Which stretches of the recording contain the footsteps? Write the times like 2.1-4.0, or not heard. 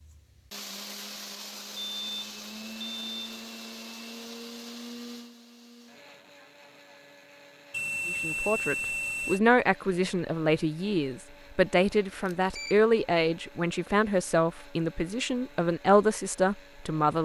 not heard.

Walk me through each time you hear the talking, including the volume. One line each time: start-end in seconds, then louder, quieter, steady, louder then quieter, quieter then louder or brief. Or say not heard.
8.1-17.2 steady.